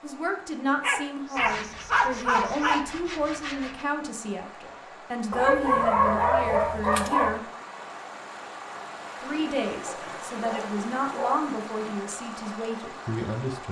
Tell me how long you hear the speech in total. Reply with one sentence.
You can hear the speech for 12 seconds altogether.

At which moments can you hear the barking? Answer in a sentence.
The barking can be heard from 0.8 to 2.8 s, from 5.3 to 7.4 s and from 9.8 to 11.4 s.